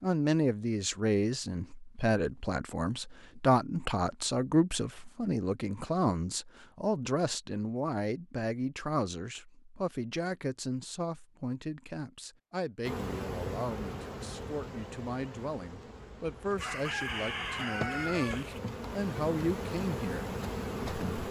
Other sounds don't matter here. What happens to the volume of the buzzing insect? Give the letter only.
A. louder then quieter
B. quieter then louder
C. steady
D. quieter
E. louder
B.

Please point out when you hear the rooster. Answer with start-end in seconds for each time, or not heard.
16.6-18.6.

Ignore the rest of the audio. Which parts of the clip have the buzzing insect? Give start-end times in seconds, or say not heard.
12.8-21.2.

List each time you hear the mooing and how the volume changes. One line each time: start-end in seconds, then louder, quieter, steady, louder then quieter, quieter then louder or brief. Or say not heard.
not heard.